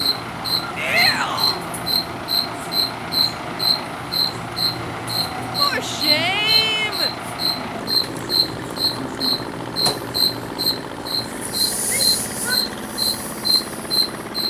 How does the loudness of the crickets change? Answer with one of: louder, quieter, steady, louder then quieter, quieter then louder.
steady.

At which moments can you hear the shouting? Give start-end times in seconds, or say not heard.
0.8-1.6, 5.5-7.1, 11.8-12.7.